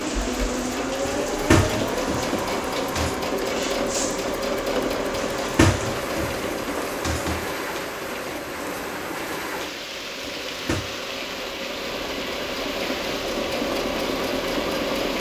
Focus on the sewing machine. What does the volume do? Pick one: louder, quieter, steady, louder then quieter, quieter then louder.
quieter then louder.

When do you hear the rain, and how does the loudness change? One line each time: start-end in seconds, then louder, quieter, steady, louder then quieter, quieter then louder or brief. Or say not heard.
0.0-15.1 steady.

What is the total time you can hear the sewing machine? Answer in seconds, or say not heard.
15 s.